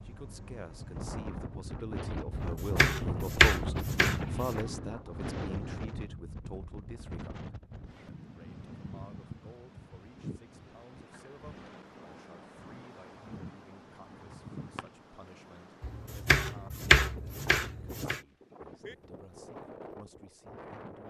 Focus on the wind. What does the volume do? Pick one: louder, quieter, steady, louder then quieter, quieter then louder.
quieter.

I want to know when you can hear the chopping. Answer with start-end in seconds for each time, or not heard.
2.3-4.5, 15.8-18.2.